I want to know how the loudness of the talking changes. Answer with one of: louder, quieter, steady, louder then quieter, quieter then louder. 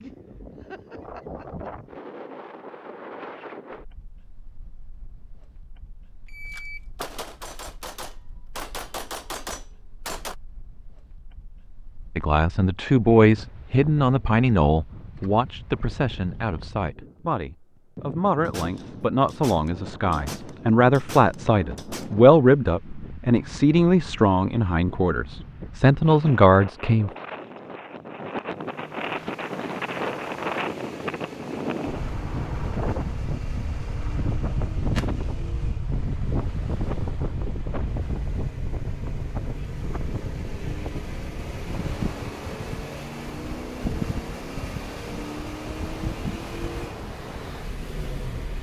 quieter then louder.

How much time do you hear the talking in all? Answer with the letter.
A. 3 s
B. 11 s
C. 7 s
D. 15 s
D.